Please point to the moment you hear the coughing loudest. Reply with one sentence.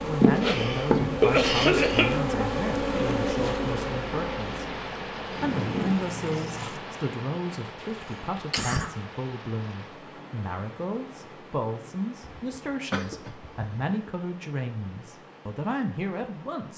The volume of the coughing peaks at 1 second.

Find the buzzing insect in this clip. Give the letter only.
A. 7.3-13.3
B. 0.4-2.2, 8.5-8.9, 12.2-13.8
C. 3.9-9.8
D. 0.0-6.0
D.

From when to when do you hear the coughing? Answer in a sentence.
The coughing can be heard from 0.4 to 2.2 s, from 8.5 to 8.9 s and from 12.2 to 13.8 s.